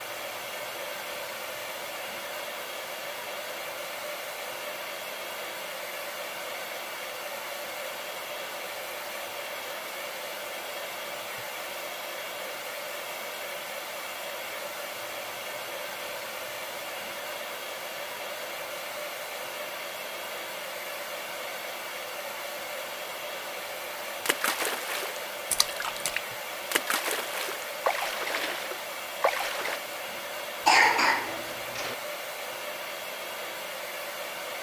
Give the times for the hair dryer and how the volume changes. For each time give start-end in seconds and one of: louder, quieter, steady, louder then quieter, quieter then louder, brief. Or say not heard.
0.0-34.5 steady.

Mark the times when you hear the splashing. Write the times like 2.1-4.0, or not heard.
24.1-29.8.